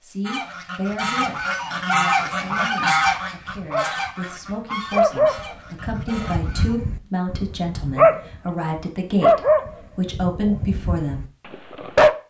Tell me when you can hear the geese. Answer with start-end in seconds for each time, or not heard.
0.2-6.8.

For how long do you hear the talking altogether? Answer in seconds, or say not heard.
11 s.